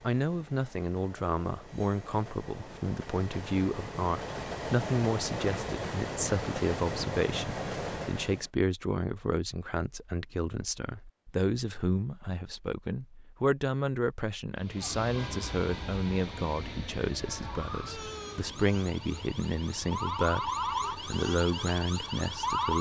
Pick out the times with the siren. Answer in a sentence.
The siren can be heard from 14.8 to 22.7 s.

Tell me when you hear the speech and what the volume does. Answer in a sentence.
The speech can be heard from 0.0 to 22.7 s, at a steady volume.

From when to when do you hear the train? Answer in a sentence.
You can hear the train from 0.0 to 8.5 s and from 14.6 to 22.7 s.